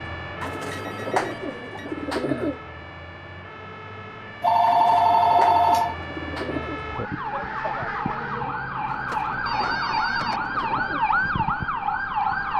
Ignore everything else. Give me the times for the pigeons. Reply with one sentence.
You can hear the pigeons from 0.4 to 2.6 s, from 4.7 to 6.8 s and from 8.8 to 11.1 s.